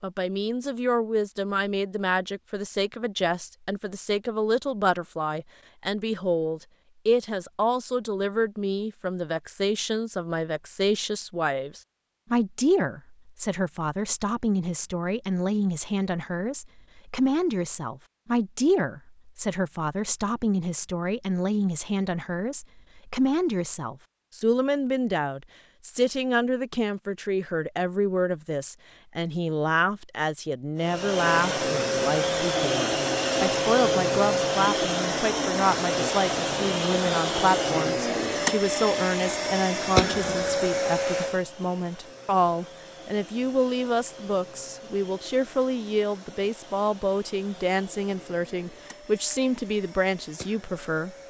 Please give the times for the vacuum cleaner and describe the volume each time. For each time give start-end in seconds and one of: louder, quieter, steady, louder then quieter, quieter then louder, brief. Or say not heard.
30.8-51.2 quieter.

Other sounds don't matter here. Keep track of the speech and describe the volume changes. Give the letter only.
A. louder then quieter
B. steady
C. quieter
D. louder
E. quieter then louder
B.